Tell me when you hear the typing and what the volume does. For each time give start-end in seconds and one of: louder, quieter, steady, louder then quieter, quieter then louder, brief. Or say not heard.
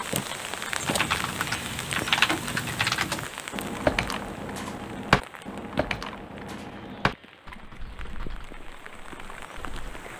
0.8-9.8 quieter.